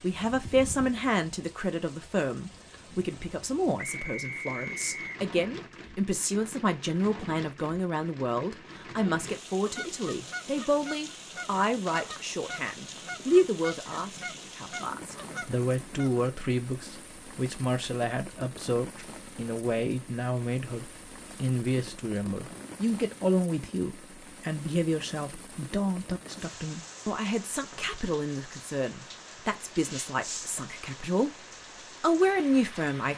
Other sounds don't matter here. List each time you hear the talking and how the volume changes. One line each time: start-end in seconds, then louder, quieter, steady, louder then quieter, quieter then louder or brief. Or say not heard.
0.0-33.1 steady.